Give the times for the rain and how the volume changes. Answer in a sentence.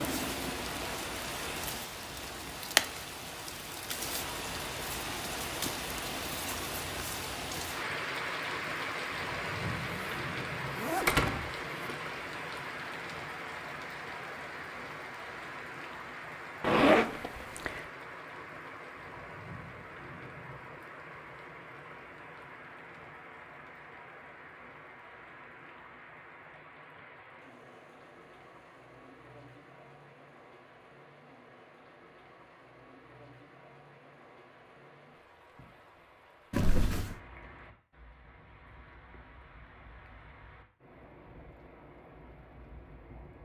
The rain can be heard from 0.0 to 43.4 s, getting quieter.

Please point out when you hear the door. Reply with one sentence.
The door can be heard from 11.1 to 11.9 s.